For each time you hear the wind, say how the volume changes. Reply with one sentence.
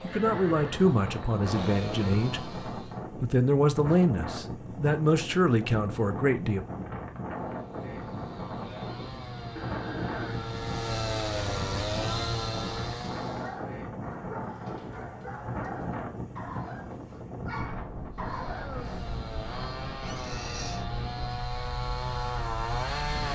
The wind can be heard from 0.0 to 23.2 s, at a steady volume.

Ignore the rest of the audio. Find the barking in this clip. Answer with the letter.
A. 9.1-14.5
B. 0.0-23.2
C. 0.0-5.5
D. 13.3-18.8
D.